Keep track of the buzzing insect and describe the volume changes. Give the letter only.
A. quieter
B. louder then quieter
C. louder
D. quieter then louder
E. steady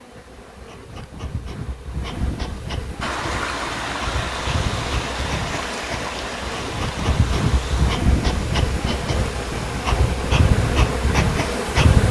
C.